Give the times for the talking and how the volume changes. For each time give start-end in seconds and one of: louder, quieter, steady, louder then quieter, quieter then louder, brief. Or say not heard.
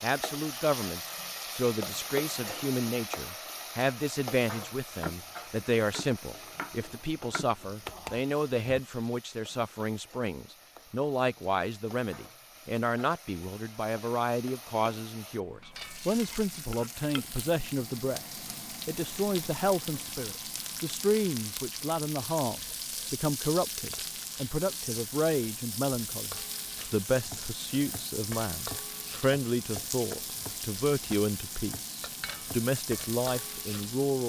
0.0-34.2 steady.